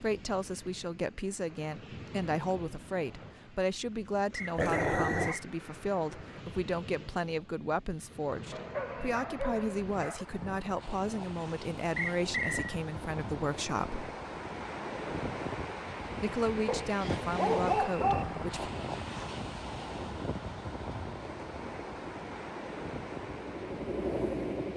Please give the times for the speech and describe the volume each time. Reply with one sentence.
You can hear the speech from 0.0 to 14.1 s, at a steady volume; and briefly from 16.2 to 18.7 s.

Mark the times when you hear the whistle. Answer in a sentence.
You can hear the whistle from 4.3 to 5.5 s, from 11.9 to 12.8 s and from 17.0 to 18.2 s.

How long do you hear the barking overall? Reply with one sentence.
You can hear the barking for 4 seconds altogether.